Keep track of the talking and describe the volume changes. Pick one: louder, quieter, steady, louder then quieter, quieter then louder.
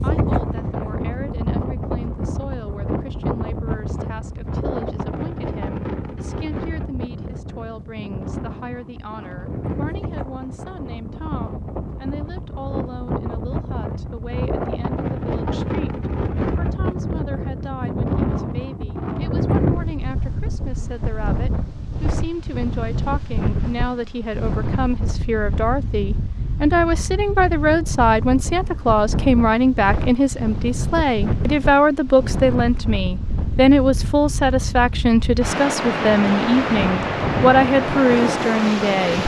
louder.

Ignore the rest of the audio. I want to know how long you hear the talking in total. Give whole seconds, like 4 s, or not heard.
39 s.